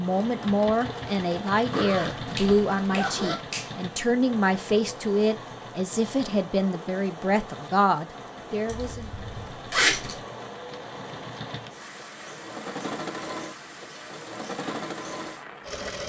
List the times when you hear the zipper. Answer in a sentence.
You can hear the zipper from 1.7 to 3.4 s and from 8.7 to 10.2 s.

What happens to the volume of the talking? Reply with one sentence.
The loudness of the talking stays about the same.